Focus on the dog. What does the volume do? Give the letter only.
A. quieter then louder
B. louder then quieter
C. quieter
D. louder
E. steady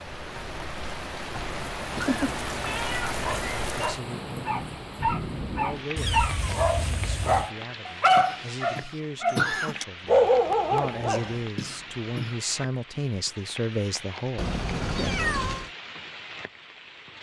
D.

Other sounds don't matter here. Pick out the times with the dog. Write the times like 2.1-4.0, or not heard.
3.1-11.3.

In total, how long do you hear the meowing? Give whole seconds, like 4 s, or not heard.
5 s.